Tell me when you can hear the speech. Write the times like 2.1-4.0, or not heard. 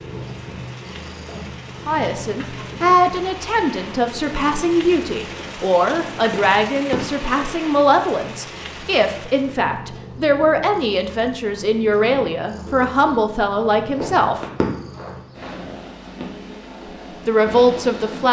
1.9-14.4, 17.2-18.2.